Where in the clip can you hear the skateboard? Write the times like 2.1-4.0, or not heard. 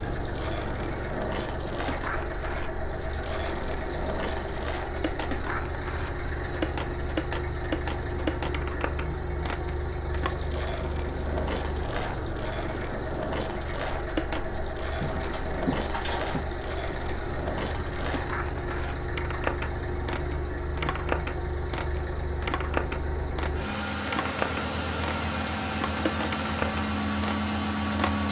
0.0-28.2.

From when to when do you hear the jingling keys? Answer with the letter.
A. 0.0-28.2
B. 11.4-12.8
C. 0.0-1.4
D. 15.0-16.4
D.